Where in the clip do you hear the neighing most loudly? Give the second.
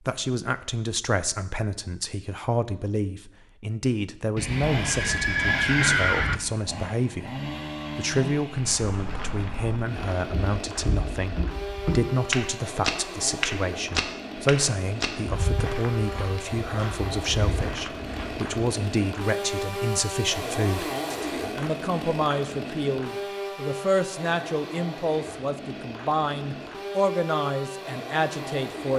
6 s.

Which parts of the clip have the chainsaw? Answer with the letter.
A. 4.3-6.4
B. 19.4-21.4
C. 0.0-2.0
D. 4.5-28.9
D.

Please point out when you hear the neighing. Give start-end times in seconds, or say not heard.
4.3-6.4.